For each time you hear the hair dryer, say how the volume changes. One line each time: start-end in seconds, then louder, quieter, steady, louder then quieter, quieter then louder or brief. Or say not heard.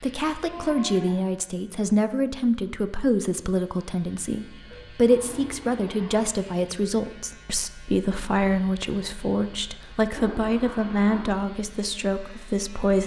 not heard.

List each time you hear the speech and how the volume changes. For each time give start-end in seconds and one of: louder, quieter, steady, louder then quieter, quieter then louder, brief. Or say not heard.
0.0-13.0 steady.